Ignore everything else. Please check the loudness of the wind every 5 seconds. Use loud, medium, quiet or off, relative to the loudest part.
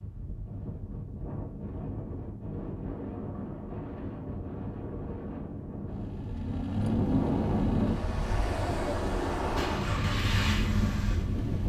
medium, loud, loud.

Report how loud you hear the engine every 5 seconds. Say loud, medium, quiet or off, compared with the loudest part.
off, loud, loud.